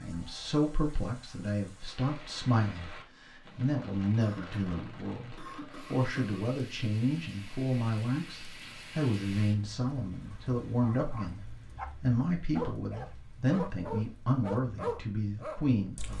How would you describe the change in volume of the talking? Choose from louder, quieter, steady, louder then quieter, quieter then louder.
steady.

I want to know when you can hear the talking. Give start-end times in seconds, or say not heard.
0.0-16.1.